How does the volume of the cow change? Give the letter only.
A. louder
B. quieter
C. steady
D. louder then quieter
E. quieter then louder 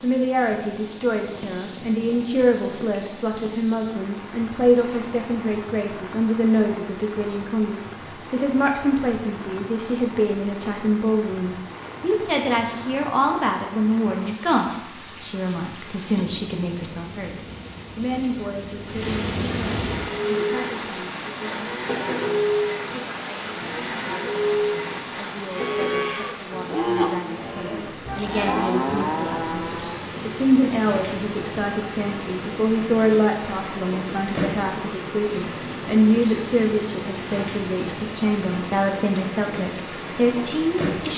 A.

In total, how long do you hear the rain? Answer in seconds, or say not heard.
41 s.